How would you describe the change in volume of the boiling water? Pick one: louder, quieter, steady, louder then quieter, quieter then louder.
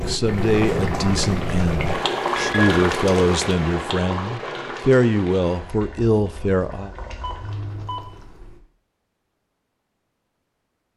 quieter.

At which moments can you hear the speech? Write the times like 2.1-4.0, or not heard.
0.0-6.9.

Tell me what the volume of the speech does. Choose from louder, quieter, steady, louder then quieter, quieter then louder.
steady.